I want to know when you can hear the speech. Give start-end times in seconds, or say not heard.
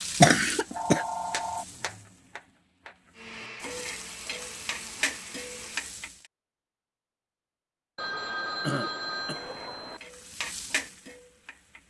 not heard.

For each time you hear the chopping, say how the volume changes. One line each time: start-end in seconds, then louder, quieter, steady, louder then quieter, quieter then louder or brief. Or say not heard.
not heard.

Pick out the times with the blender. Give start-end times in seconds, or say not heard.
3.1-6.0.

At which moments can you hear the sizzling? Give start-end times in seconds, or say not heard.
0.0-6.2, 9.3-11.8.